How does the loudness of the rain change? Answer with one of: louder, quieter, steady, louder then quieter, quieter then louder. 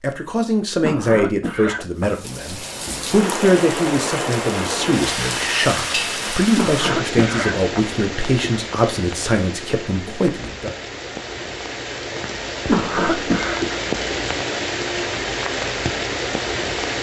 quieter then louder.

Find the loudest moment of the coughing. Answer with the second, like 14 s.
13 s.